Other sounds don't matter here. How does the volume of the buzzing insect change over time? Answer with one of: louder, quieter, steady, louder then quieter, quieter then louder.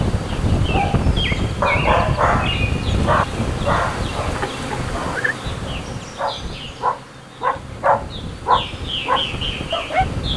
quieter then louder.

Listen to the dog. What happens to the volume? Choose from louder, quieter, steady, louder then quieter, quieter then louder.
quieter then louder.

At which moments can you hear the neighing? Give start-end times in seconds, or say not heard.
4.3-5.3.